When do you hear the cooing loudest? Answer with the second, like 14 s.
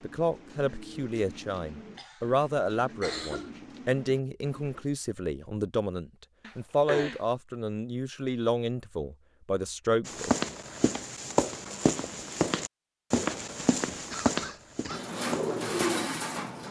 16 s.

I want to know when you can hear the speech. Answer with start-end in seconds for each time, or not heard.
0.0-10.3.